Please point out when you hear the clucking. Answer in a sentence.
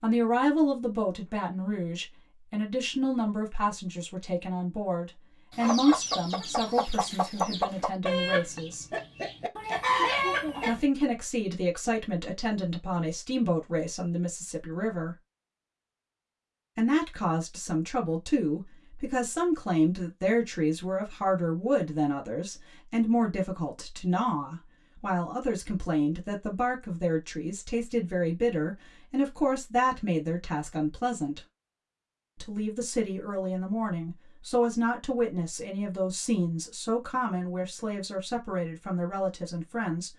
You can hear the clucking from 5.5 to 10.8 s.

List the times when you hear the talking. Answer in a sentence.
The talking can be heard from 0.0 to 8.8 s, from 10.7 to 15.2 s, from 16.8 to 31.4 s and from 32.4 to 40.1 s.